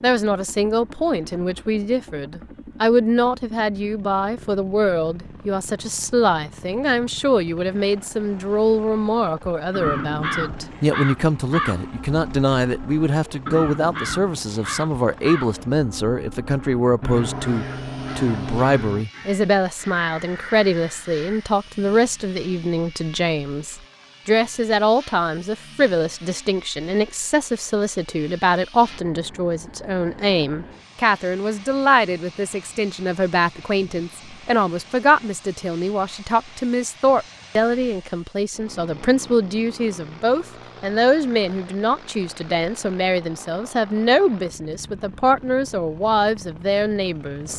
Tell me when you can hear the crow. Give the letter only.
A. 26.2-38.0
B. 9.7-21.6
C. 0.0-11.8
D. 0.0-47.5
B.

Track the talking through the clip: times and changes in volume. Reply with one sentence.
The talking can be heard from 0.0 to 47.5 s, at a steady volume.